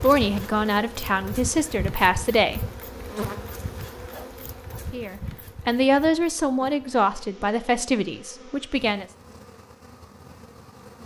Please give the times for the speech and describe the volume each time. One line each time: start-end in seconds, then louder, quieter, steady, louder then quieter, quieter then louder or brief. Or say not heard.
0.0-2.6 brief
4.8-9.1 quieter.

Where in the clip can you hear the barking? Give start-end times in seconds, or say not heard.
4.1-5.0.